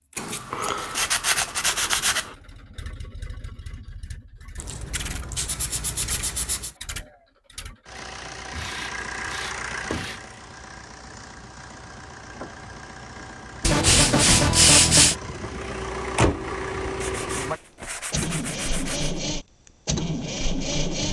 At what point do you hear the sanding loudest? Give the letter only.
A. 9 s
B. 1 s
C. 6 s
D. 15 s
D.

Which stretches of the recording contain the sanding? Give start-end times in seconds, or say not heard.
0.1-2.4, 4.5-6.8, 8.5-10.2, 13.6-15.2, 17.0-19.1.